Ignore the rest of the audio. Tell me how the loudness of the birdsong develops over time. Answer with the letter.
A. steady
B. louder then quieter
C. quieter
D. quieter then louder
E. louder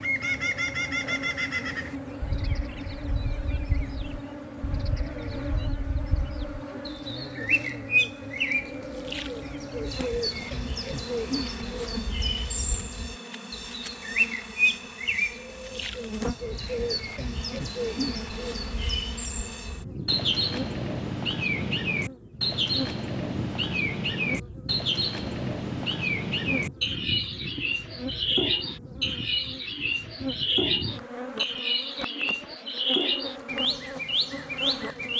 E.